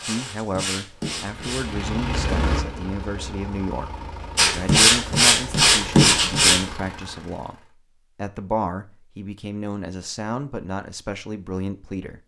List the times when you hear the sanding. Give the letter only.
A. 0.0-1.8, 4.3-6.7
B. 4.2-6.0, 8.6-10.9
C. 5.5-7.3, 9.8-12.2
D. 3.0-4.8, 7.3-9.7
A.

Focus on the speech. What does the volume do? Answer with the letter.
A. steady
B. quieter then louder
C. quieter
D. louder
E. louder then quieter
A.